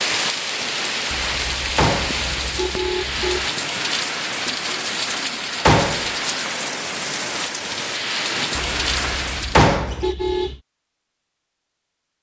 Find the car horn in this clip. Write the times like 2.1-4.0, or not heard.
1.1-3.5, 8.7-10.6.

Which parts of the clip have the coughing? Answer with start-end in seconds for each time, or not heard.
not heard.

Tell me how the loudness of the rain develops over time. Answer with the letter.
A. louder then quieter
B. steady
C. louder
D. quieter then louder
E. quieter
B.